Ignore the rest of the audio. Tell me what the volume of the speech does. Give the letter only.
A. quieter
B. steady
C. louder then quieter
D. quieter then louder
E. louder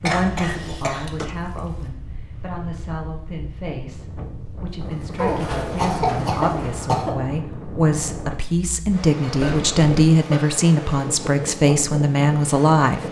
E.